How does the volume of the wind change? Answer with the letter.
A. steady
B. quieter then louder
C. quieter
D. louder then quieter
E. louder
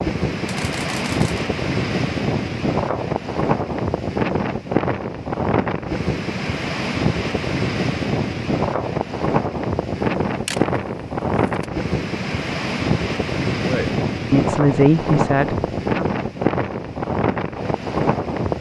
A.